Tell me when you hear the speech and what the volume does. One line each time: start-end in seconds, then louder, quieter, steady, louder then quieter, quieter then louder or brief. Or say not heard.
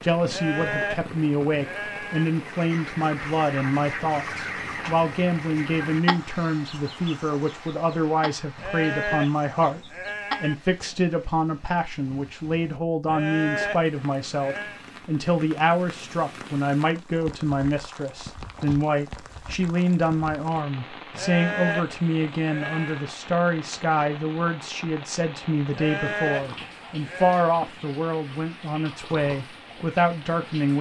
0.0-30.7 steady.